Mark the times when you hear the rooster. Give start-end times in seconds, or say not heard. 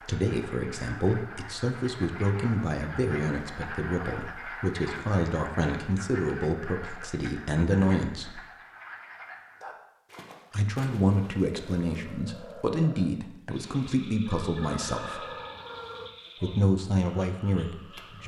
14.2-16.1.